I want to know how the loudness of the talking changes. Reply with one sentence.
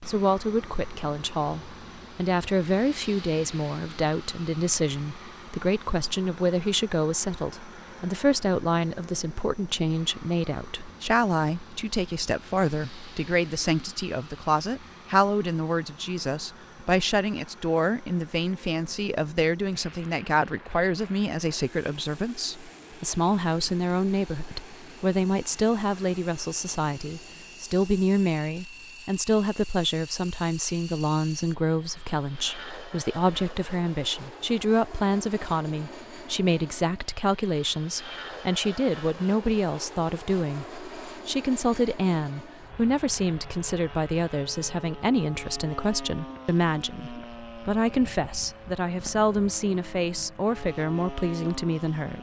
The loudness of the talking stays about the same.